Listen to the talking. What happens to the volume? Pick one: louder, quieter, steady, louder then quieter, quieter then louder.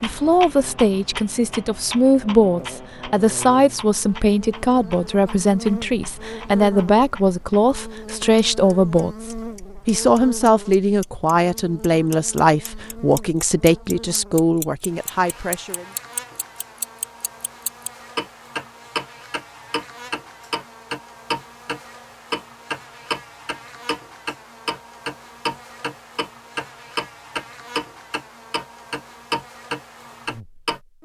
steady.